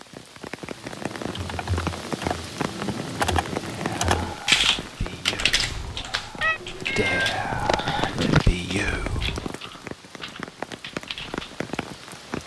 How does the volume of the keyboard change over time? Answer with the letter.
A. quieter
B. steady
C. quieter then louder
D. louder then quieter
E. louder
D.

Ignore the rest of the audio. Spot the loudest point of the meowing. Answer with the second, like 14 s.
8 s.